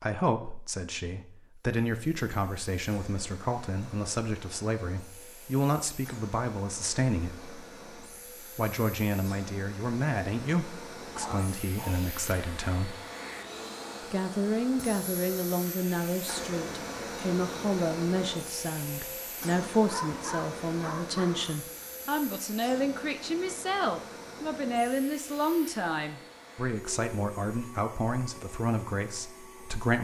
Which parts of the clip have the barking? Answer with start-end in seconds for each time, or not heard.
11.2-12.1, 19.9-21.6.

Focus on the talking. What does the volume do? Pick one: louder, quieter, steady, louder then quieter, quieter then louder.
steady.